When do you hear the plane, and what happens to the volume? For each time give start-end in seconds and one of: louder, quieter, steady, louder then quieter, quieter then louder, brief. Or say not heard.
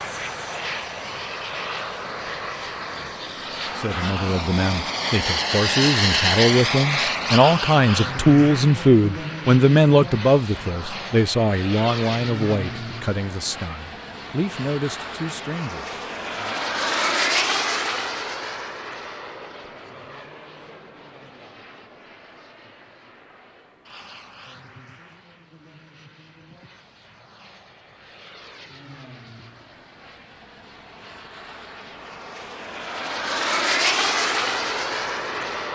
0.0-35.7 quieter then louder.